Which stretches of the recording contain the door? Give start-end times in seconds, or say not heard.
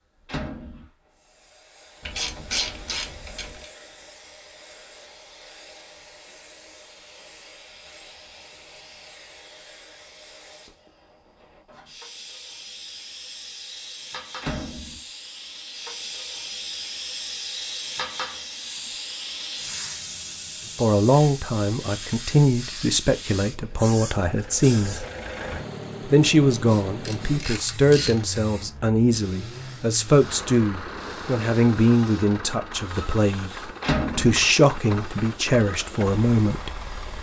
0.2-0.8, 14.4-15.0, 33.8-34.4.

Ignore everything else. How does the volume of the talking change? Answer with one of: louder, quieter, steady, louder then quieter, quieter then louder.
steady.